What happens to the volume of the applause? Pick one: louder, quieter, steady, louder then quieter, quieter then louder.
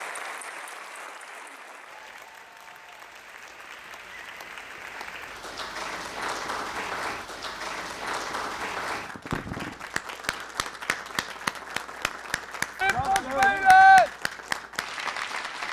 louder.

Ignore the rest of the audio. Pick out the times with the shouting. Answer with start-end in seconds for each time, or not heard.
12.8-14.1.